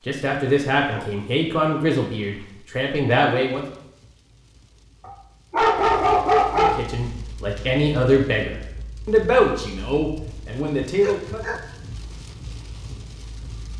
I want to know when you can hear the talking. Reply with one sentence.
The talking can be heard from 0.1 to 3.6 s and from 6.5 to 11.4 s.